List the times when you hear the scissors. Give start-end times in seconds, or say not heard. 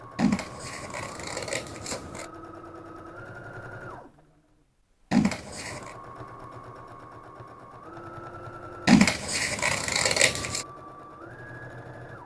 0.1-2.2, 5.1-6.0, 8.8-10.7.